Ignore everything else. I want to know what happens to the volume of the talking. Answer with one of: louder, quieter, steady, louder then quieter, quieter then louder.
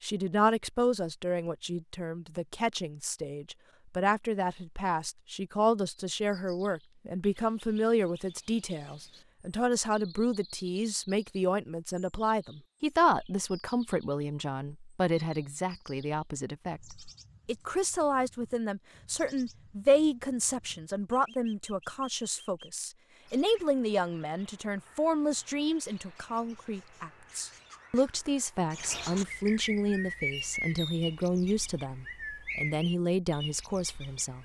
steady.